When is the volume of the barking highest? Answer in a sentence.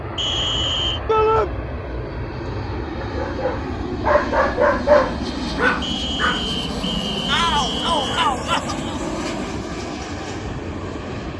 The volume of the barking peaks at 5 seconds.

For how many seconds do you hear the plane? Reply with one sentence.
The plane can be heard for 11 seconds in total.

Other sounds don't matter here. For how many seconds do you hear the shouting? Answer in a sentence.
You can hear the shouting for 2 seconds altogether.